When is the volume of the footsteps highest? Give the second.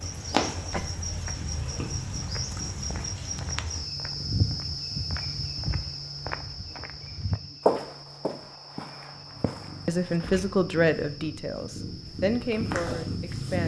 8 s.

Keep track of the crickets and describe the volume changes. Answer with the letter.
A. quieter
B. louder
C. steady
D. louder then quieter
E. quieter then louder
A.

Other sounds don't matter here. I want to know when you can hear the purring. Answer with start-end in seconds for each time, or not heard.
0.1-5.0, 9.1-13.6.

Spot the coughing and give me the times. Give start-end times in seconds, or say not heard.
0.7-1.9.